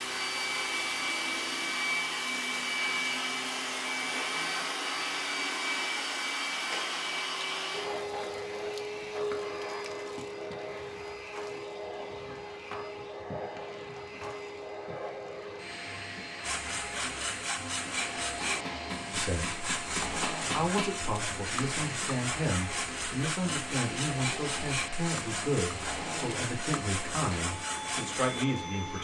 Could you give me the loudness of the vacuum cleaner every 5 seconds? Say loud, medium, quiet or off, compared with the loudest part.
loud, loud, medium, medium, medium, medium.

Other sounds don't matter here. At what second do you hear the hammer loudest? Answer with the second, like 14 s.
21 s.